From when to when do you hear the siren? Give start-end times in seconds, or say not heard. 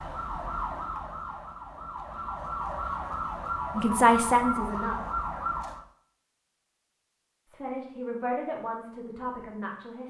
0.0-5.8.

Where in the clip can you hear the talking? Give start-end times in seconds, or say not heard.
3.8-5.2, 7.5-10.0.